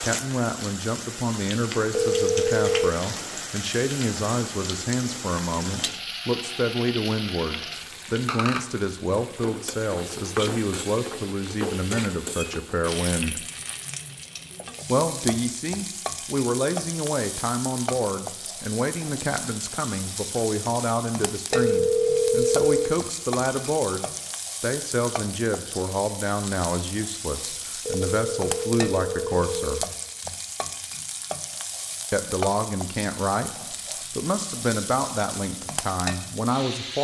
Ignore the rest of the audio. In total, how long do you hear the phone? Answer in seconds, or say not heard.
4 s.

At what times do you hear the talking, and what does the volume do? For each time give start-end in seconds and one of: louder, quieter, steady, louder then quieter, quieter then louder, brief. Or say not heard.
0.0-13.4 steady
14.8-29.9 steady
32.1-36.9 steady.